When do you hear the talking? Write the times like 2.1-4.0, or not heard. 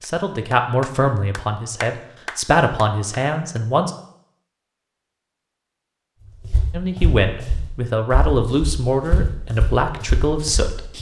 0.0-3.9, 6.7-10.9.